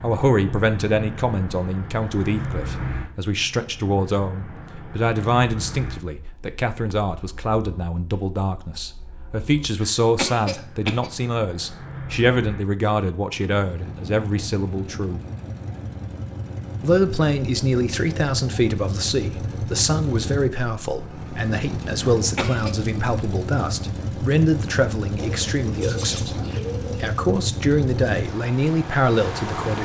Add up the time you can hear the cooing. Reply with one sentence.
The cooing can be heard for 2 seconds in total.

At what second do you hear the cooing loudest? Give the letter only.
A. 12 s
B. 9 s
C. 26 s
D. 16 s
C.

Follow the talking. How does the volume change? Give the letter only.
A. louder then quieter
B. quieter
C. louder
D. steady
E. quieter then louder
D.